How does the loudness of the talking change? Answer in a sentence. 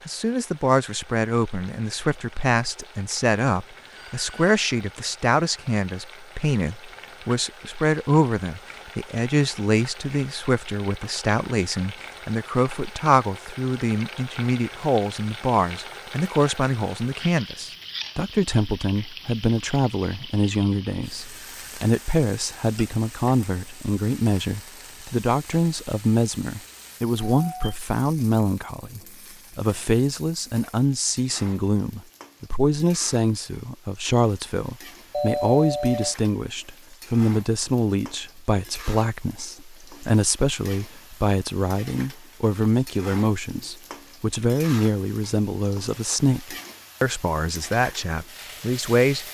The loudness of the talking stays about the same.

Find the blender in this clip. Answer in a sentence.
The blender can't be heard in this clip.